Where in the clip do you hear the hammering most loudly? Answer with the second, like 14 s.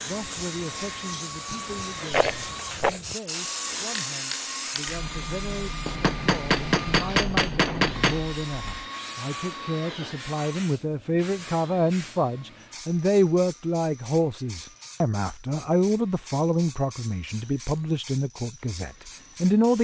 7 s.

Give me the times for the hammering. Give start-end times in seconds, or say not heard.
5.8-8.2.